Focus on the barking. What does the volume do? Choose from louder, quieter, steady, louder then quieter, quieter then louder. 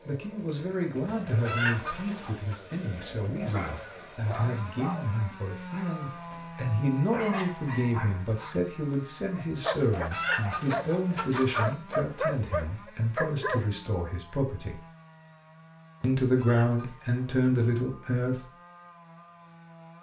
quieter then louder.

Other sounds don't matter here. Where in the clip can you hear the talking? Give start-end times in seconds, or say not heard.
0.1-14.8, 16.0-18.4.